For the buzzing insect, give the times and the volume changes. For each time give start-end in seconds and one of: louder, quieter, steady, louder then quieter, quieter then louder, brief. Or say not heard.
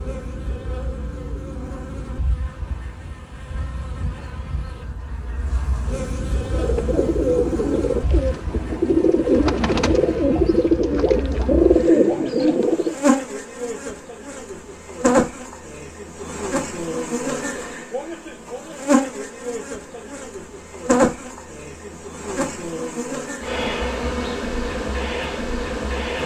0.0-26.2 louder.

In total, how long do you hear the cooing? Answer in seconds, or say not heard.
7 s.